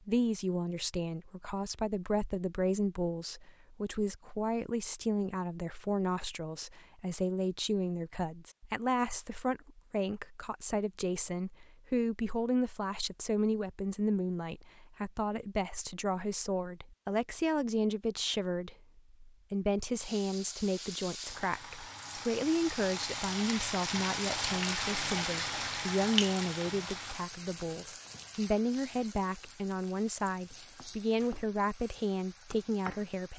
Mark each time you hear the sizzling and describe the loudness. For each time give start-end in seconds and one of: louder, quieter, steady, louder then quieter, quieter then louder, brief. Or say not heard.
19.9-33.3 louder then quieter.